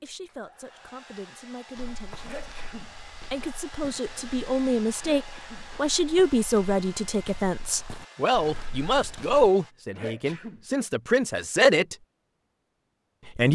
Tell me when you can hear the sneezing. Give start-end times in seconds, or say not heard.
2.2-3.0, 5.0-5.7, 9.9-10.7.